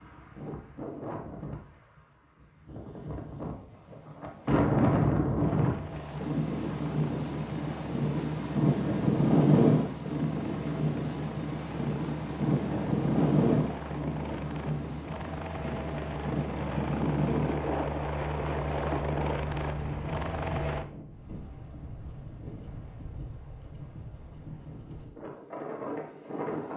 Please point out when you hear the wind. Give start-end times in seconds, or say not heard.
0.0-26.7.